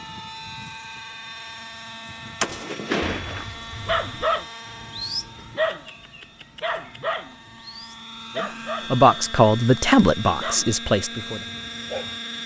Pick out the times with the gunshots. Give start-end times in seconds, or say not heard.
2.4-3.5.